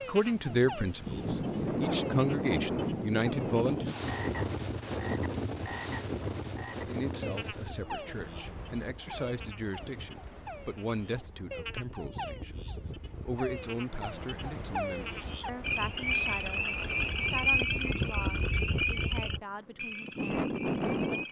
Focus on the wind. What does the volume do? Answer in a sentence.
The volume of the wind goes down, then up.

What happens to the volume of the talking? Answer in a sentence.
The volume of the talking goes down.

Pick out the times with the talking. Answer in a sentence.
The talking can be heard from 0.1 to 3.9 s and from 6.8 to 21.2 s.